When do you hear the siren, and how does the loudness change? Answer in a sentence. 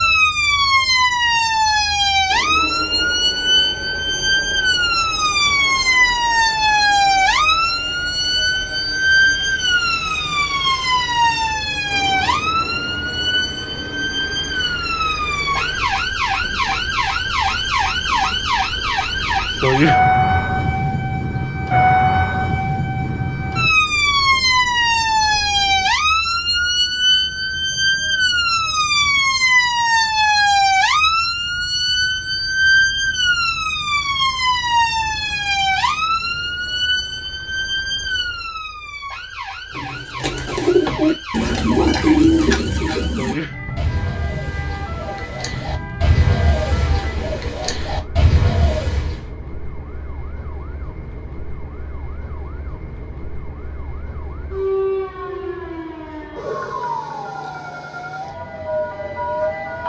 The siren can be heard from 0.0 to 59.8 s, getting quieter.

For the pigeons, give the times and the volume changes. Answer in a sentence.
The pigeons can be heard from 39.8 to 49.2 s, getting quieter then louder.